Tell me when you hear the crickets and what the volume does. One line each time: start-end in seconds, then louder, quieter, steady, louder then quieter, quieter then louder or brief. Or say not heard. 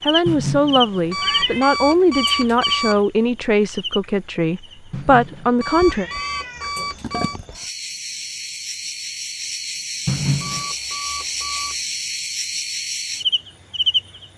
0.0-14.3 quieter then louder.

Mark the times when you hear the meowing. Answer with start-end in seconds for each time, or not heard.
0.2-1.7, 4.9-7.7, 10.1-10.7.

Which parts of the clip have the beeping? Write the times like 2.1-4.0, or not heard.
1.1-3.0, 5.6-7.4, 10.4-11.8.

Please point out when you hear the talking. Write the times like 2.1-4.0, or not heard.
0.1-6.0.